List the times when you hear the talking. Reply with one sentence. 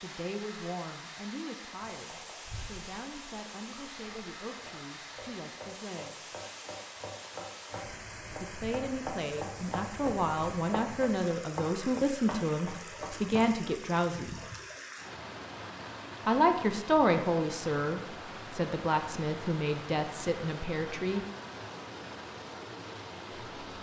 You can hear the talking from 0.0 to 6.3 s, from 8.4 to 14.3 s and from 16.2 to 21.2 s.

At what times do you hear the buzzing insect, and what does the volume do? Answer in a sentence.
The buzzing insect can't be heard in this clip.